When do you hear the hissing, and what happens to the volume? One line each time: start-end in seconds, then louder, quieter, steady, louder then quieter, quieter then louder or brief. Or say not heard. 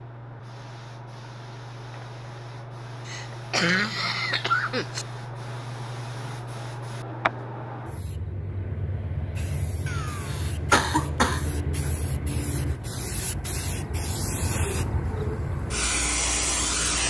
0.0-17.0 louder.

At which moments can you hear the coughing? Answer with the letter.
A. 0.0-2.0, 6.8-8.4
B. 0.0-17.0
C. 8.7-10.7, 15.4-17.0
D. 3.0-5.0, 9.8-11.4
D.